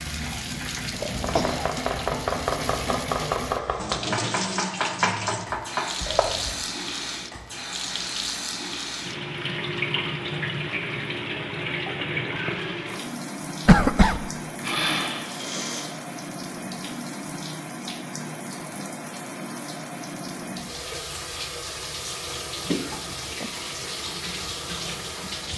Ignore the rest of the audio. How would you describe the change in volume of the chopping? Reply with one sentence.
The volume of the chopping stays about the same.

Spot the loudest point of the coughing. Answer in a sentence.
The loudest moment of the coughing is at 14 seconds.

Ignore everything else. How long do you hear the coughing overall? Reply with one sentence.
You can hear the coughing for 2 seconds altogether.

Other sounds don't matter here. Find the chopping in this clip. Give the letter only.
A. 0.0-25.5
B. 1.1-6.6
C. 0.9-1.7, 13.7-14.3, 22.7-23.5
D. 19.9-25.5
B.